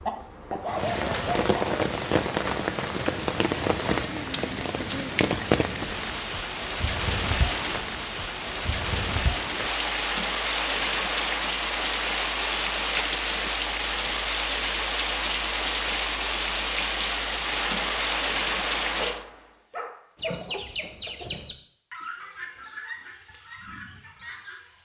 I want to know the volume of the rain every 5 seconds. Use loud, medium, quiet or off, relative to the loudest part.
loud, loud, loud, loud, off.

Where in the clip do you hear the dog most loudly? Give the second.
1 s.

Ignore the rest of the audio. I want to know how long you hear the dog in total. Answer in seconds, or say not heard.
3 s.